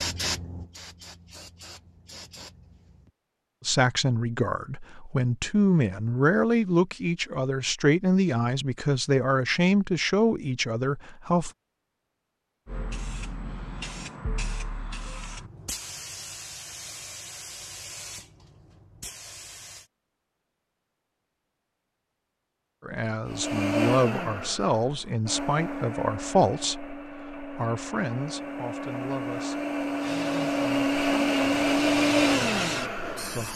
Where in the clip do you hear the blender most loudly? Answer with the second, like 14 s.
32 s.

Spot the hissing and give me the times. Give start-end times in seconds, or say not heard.
0.0-3.1, 12.7-19.9, 30.0-33.5.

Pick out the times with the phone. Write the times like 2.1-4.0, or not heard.
not heard.